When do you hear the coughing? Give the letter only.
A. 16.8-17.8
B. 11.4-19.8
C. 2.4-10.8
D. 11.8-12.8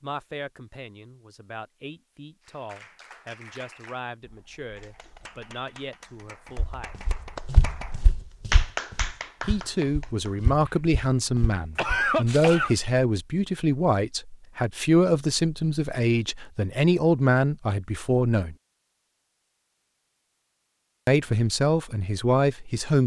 D.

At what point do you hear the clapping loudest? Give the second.
9 s.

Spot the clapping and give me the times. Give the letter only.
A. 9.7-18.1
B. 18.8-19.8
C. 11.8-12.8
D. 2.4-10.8
D.